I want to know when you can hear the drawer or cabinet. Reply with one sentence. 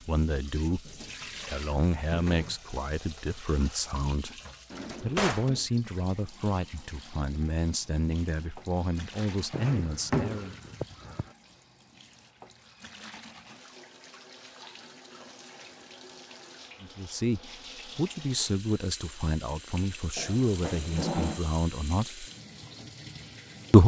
The drawer or cabinet can be heard from 4.7 to 5.5 s, from 9.5 to 11.2 s and from 20.1 to 21.4 s.